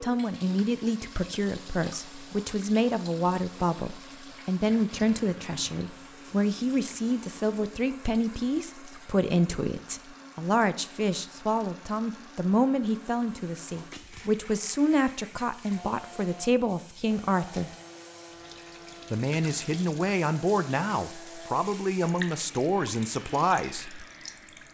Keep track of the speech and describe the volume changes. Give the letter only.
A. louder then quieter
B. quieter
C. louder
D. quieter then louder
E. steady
E.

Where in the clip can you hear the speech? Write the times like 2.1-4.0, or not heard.
0.0-17.7, 19.1-24.0.